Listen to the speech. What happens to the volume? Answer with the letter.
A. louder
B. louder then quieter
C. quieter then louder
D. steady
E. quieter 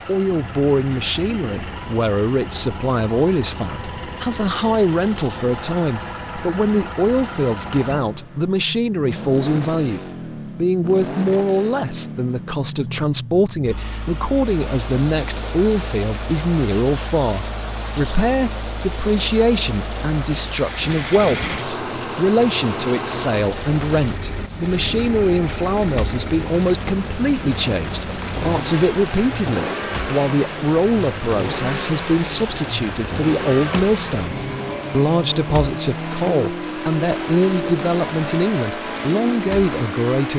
D.